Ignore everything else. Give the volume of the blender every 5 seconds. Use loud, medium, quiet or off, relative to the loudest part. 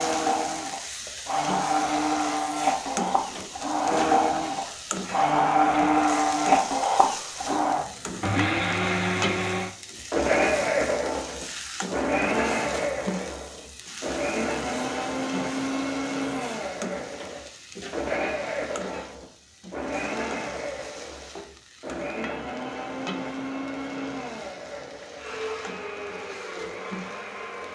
loud, loud, loud, medium, medium, quiet.